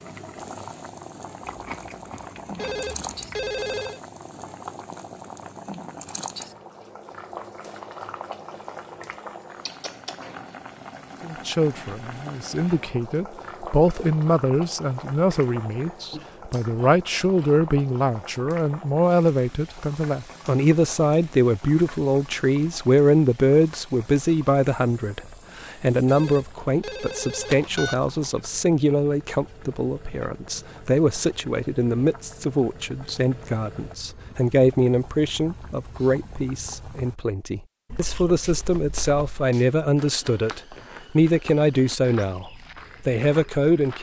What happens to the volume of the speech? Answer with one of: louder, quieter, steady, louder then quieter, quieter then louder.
steady.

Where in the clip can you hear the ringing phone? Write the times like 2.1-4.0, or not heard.
2.5-4.0, 26.1-28.1.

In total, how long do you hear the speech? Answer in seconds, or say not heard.
33 s.